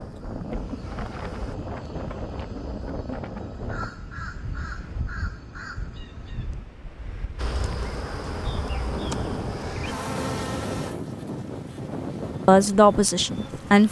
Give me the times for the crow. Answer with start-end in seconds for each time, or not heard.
0.2-6.7.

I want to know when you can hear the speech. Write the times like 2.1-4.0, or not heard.
12.4-13.8.